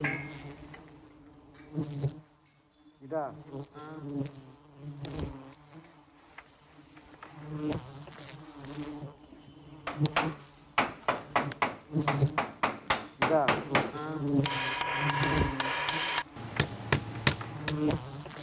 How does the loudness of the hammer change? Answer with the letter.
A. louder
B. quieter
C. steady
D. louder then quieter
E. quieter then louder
C.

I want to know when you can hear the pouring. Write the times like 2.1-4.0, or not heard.
not heard.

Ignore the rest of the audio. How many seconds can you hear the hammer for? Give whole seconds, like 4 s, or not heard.
8 s.